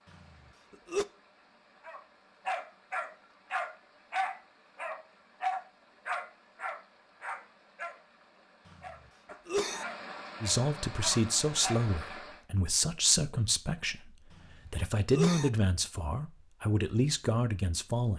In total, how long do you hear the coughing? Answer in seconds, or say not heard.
2 s.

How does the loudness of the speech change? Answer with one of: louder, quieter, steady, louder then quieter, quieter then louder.
quieter then louder.